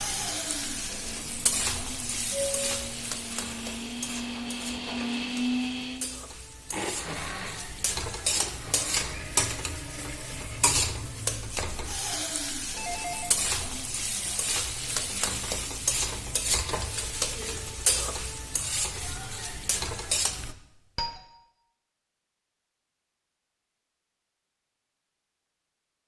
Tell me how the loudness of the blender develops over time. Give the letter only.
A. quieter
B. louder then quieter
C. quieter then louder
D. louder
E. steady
B.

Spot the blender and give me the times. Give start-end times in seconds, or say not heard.
0.0-10.7.